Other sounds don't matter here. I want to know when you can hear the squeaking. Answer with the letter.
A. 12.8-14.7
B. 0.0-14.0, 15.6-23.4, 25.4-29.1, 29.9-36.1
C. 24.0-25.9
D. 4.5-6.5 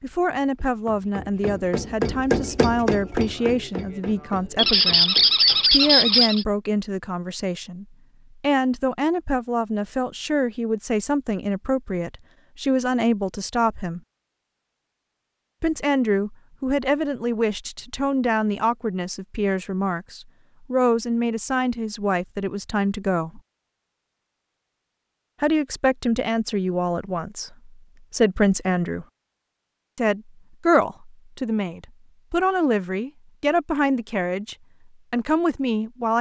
D.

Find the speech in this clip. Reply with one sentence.
You can hear the speech from 0.0 to 14.0 s, from 15.6 to 23.4 s, from 25.4 to 29.1 s and from 29.9 to 36.1 s.